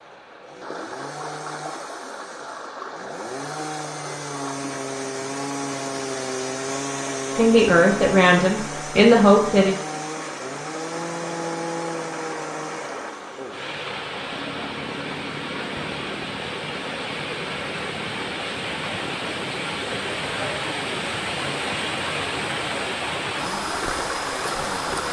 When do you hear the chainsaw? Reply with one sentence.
The chainsaw can be heard from 0.0 to 25.0 s.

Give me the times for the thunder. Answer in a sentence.
You can't hear the thunder here.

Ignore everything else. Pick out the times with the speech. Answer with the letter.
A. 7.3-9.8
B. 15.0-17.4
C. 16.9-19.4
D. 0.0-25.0
A.